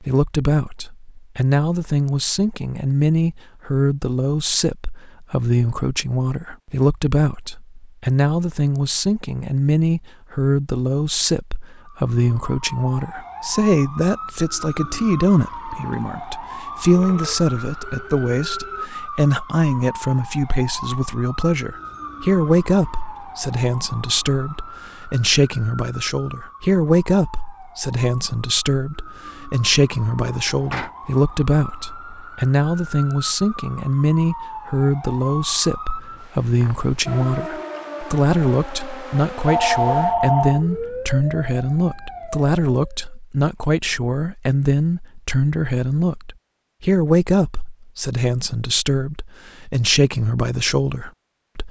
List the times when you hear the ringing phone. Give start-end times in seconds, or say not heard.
16.9-18.9, 39.5-40.6.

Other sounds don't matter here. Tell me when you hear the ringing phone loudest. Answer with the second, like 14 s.
40 s.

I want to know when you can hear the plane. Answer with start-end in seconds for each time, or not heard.
not heard.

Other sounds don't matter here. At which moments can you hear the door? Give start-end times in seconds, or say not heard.
30.2-30.9.